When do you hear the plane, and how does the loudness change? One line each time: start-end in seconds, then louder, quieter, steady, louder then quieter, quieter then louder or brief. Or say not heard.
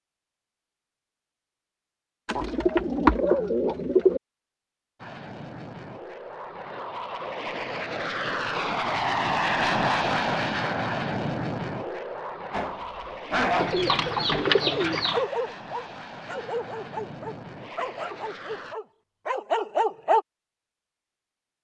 5.0-18.8 louder then quieter.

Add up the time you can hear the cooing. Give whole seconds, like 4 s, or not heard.
4 s.